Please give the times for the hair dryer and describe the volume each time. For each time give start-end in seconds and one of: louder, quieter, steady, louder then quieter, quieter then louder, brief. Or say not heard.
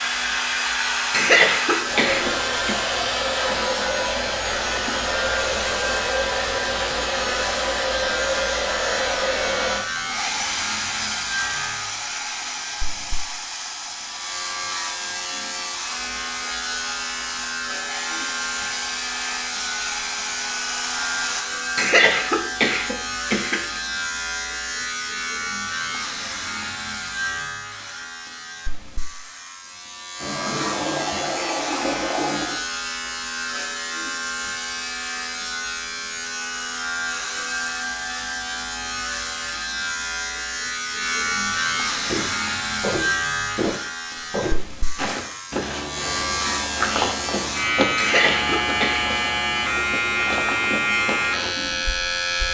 0.0-21.4 quieter.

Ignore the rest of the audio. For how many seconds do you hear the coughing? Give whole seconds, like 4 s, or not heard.
5 s.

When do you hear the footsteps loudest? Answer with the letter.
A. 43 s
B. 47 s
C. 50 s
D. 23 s
B.